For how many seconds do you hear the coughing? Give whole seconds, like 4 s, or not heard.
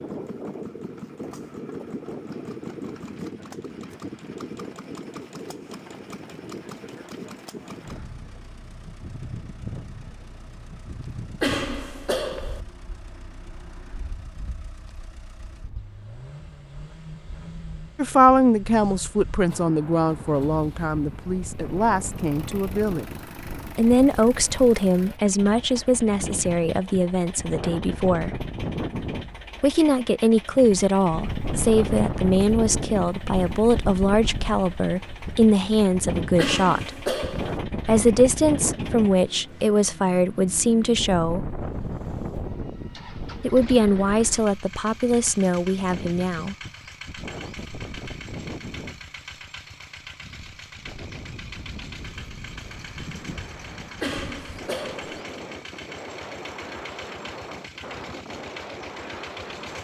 4 s.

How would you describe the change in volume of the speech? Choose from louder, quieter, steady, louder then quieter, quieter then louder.
steady.